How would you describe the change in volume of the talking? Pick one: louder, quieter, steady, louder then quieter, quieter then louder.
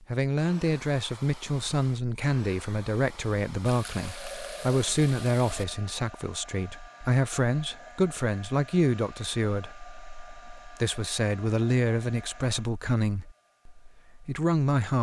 steady.